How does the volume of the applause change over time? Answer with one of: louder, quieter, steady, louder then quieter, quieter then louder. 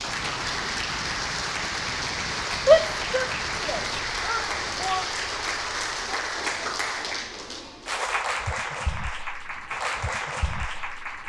steady.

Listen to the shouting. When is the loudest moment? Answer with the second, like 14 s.
3 s.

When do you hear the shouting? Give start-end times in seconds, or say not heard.
2.6-5.1.